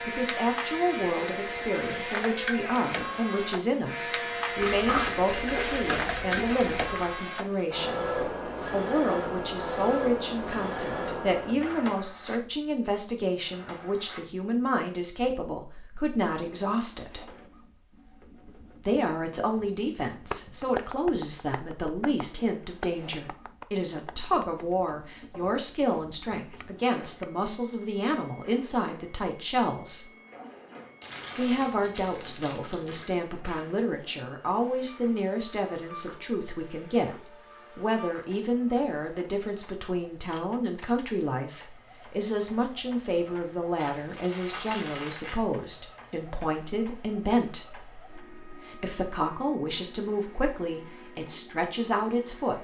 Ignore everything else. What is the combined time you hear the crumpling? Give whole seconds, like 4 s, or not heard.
6 s.